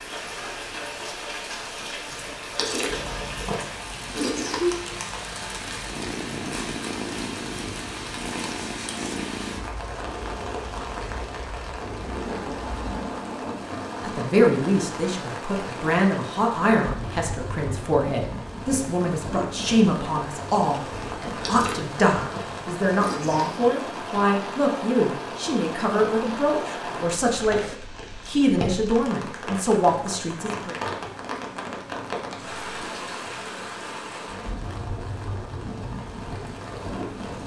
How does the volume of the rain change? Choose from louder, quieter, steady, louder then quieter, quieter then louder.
steady.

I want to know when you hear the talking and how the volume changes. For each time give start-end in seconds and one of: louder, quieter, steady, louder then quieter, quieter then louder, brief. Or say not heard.
14.0-30.8 steady.